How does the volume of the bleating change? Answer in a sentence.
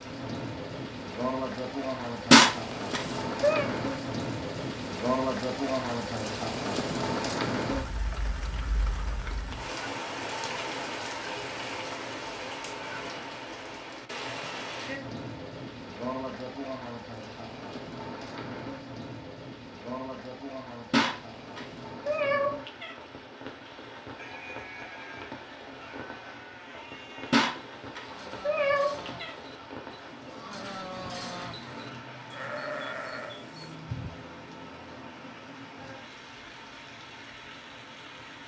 The volume of the bleating goes up.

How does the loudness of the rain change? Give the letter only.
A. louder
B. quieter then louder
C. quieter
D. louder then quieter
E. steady
C.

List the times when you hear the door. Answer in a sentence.
The door can't be heard in this clip.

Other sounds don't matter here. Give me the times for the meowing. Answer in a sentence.
You can hear the meowing from 2.3 to 3.6 s, from 20.9 to 22.9 s and from 27.3 to 29.4 s.